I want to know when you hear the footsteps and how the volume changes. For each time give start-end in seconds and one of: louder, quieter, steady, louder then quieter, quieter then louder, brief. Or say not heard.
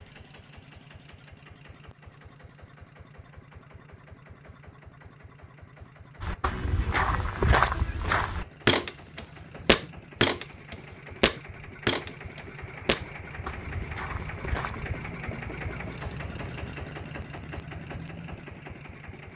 6.2-15.2 quieter.